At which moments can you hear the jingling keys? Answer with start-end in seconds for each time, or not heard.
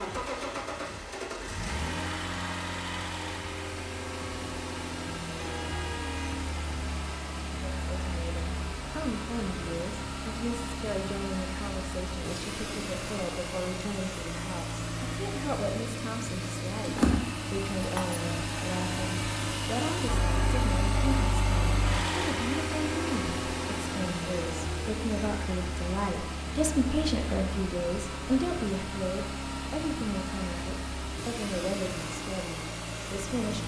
16.9-18.2.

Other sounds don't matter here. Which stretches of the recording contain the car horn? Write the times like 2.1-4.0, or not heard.
5.3-6.4.